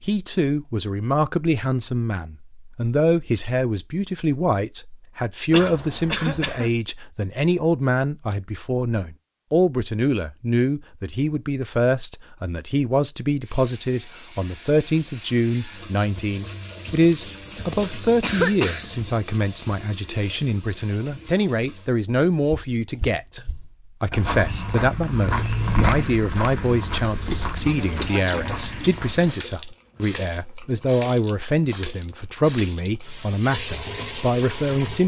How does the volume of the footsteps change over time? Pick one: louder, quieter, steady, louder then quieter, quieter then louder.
louder then quieter.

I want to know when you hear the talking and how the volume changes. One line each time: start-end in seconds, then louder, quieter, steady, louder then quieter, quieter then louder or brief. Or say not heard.
0.0-35.0 steady.